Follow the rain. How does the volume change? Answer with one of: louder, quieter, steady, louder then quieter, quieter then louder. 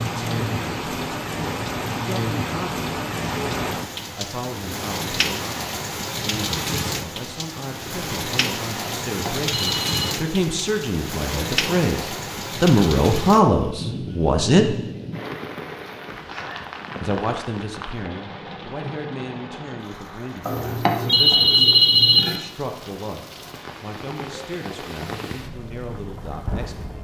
quieter.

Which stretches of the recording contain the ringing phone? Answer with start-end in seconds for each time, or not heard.
8.8-10.2, 20.4-22.4.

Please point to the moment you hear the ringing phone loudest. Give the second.
22 s.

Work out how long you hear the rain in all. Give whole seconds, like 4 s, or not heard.
27 s.